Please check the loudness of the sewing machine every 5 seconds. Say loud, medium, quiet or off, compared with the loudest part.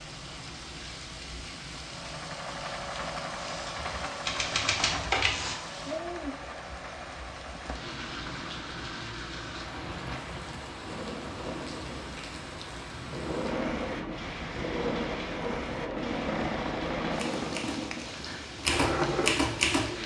medium, medium, loud, loud.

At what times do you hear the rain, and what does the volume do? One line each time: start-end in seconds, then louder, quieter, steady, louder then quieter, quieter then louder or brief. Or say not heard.
0.0-20.0 steady.